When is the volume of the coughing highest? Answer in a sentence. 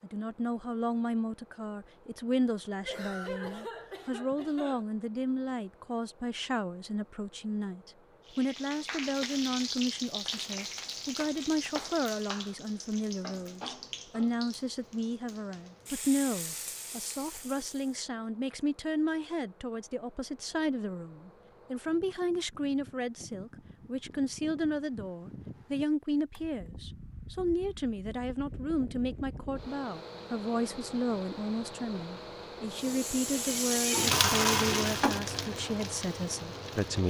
The loudest moment of the coughing is at 3 seconds.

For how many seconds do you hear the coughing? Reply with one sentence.
The coughing can be heard for 2 seconds in total.